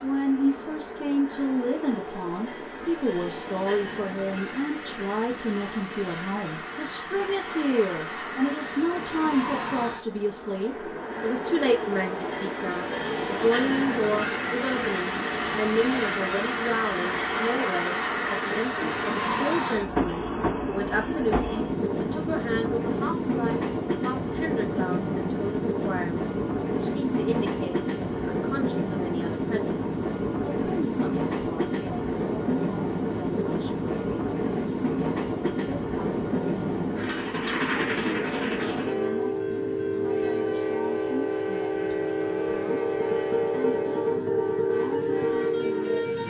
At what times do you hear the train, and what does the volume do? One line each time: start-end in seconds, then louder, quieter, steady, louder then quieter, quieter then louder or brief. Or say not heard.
0.0-46.2 louder.